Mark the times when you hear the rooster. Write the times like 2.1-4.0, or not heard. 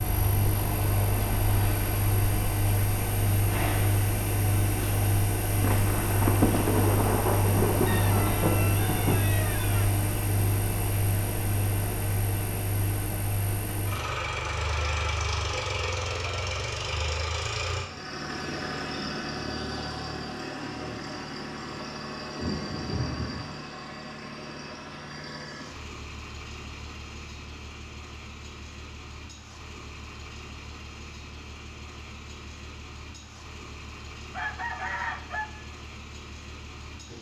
7.8-9.8, 34.3-35.5.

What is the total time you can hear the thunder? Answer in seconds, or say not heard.
5 s.